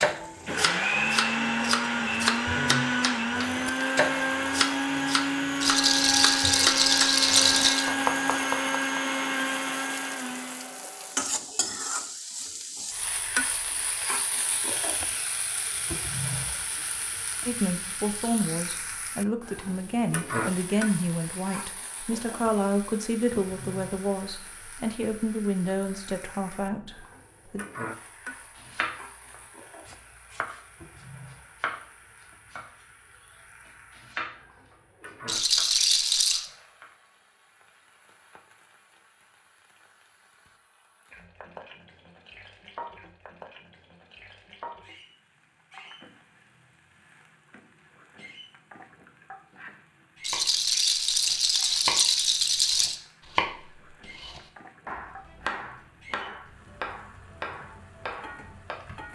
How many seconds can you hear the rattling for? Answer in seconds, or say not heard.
6 s.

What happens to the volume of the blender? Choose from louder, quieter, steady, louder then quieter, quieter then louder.
steady.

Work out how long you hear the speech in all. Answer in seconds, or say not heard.
10 s.